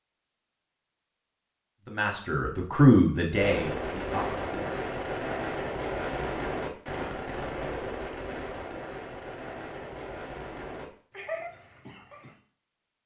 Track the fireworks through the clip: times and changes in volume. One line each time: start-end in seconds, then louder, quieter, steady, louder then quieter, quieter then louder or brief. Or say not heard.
3.3-12.3 quieter.